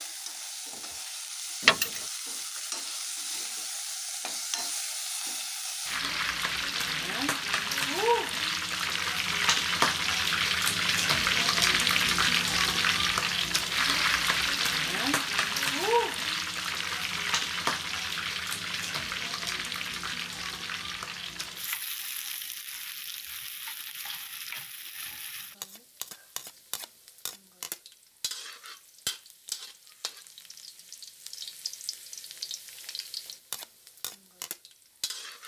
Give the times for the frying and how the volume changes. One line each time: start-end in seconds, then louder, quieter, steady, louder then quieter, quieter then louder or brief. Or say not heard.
0.0-35.4 louder then quieter.